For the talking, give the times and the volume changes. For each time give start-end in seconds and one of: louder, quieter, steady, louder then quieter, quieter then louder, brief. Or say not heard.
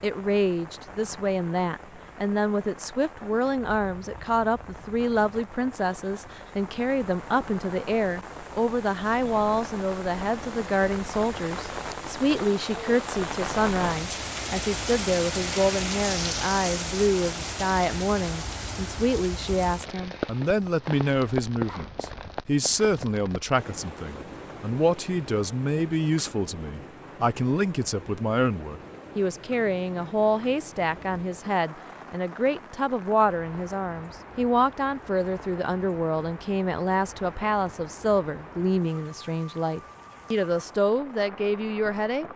0.0-42.2 steady.